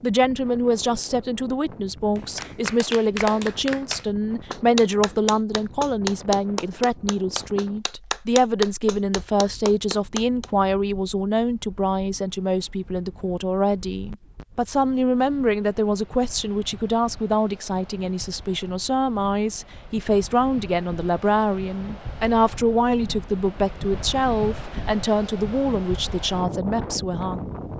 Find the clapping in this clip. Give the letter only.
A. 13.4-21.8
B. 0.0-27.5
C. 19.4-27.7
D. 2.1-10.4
D.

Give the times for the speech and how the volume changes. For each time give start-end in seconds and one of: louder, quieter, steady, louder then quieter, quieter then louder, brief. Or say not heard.
0.0-27.5 steady.